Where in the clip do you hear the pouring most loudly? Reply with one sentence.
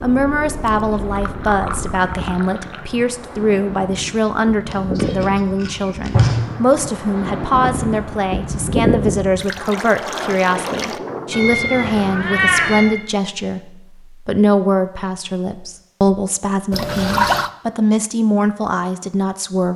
The volume of the pouring peaks at 17 seconds.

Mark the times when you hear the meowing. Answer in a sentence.
You can hear the meowing from 4.7 to 6.5 s and from 11.3 to 12.9 s.